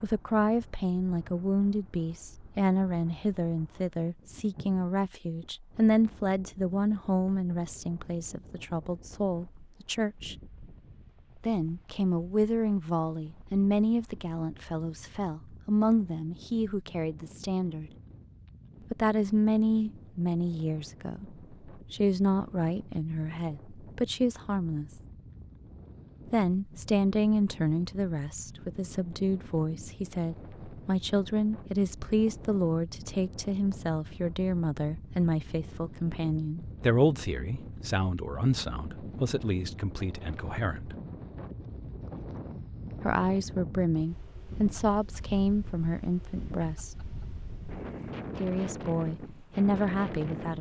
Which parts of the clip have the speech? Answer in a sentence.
The speech can be heard from 0.0 to 10.3 s, from 11.4 to 17.9 s, from 18.9 to 24.9 s, from 26.3 to 41.0 s, from 43.0 to 47.0 s and from 48.4 to 50.5 s.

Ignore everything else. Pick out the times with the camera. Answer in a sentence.
The camera can't be heard in this clip.